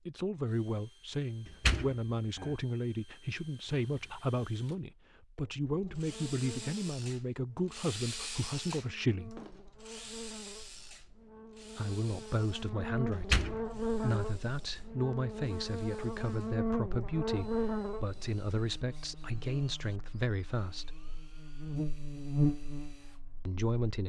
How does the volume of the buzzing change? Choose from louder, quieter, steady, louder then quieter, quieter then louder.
louder.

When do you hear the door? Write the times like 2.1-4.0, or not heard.
1.4-2.5, 13.1-14.2.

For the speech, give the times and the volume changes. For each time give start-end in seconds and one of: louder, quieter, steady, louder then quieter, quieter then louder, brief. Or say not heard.
0.1-9.4 steady
11.7-21.0 steady
23.4-24.0 brief.